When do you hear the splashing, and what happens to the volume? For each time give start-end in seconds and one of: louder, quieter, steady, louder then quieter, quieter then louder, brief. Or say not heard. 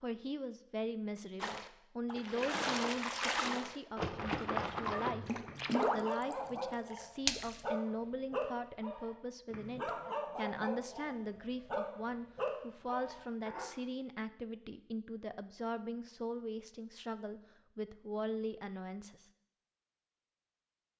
1.4-7.6 quieter.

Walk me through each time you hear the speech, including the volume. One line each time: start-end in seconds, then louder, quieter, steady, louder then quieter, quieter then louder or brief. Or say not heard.
0.0-19.3 steady.